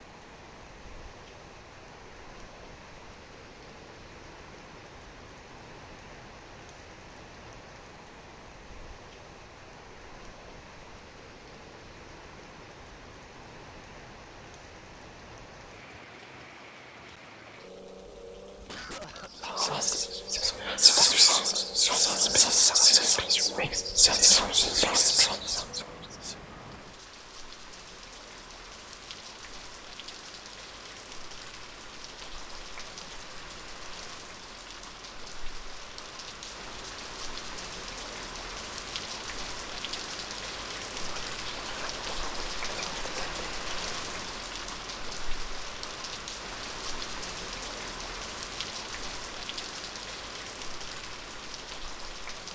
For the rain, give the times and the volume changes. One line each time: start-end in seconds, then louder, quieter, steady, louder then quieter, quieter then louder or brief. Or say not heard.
0.0-52.5 louder.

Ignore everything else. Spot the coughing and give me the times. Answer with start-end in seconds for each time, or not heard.
18.6-19.6.